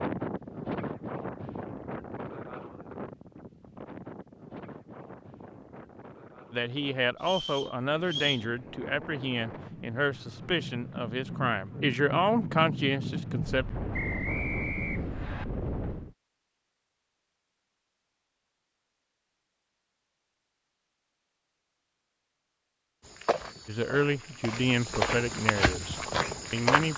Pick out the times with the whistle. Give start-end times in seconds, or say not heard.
7.2-8.5, 13.9-15.4.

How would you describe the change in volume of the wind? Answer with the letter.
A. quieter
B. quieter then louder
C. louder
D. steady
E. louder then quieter
B.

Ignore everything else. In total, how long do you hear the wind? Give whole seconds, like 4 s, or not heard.
16 s.